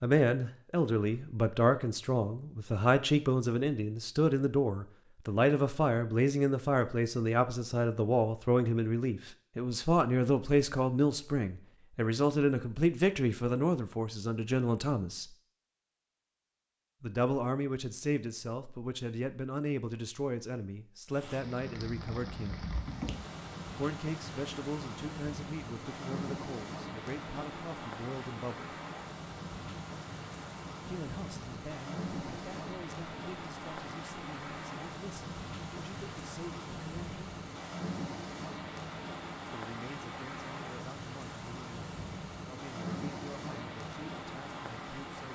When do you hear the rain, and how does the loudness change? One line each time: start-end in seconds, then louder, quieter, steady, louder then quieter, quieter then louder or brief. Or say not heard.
21.1-45.3 steady.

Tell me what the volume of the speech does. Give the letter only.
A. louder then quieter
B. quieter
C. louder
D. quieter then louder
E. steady
B.